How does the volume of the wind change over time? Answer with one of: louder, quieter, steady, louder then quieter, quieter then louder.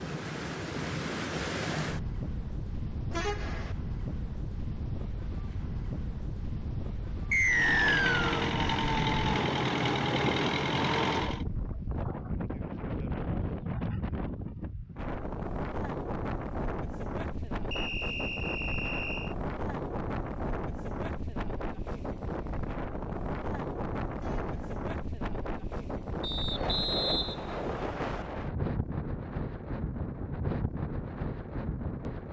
steady.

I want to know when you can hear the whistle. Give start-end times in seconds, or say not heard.
7.3-8.4, 17.7-19.4, 26.2-28.2.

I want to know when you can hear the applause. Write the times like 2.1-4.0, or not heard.
not heard.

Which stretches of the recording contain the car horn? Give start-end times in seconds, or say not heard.
3.1-3.8, 24.1-24.8.